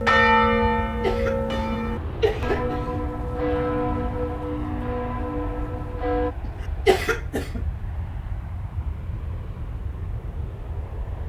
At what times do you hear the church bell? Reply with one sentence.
You can hear the church bell from 0.0 to 6.3 s.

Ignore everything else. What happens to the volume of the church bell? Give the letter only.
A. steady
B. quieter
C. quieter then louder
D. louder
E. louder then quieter
B.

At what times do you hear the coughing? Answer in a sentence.
The coughing can be heard from 1.0 to 3.0 s and from 6.8 to 7.6 s.